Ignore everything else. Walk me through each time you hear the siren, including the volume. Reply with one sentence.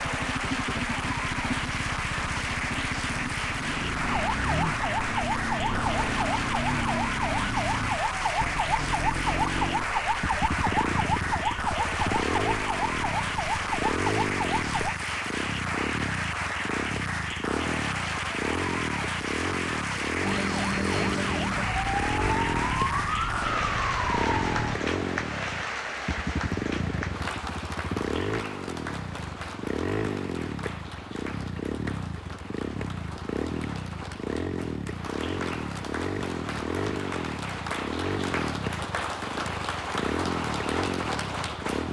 The siren can be heard from 4.0 to 14.9 s, at a steady volume; and from 20.2 to 24.8 s, at a steady volume.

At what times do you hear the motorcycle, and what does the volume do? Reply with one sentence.
The motorcycle can be heard from 0.0 to 41.8 s, at a steady volume.